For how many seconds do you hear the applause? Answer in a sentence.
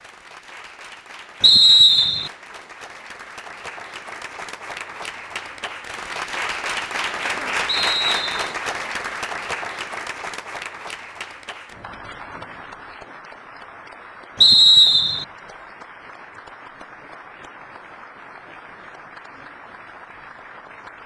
You can hear the applause for 21 seconds altogether.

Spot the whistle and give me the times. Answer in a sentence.
The whistle can be heard from 1.4 to 2.3 s, from 7.7 to 8.6 s and from 14.4 to 15.2 s.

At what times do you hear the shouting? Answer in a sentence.
The shouting can't be heard in this clip.